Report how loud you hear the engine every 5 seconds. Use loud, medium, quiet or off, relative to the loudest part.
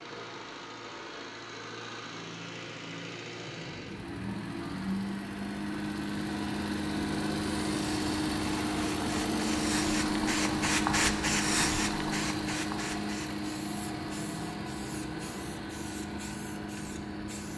medium, loud, loud, medium.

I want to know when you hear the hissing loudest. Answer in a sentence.
The loudest moment of the hissing is at 11 seconds.